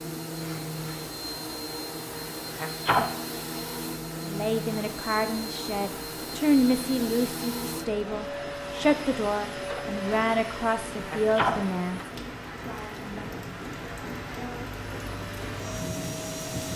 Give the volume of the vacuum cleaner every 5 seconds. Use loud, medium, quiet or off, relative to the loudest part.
loud, loud, medium, loud.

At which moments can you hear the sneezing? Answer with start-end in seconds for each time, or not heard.
2.5-3.1, 11.1-11.6.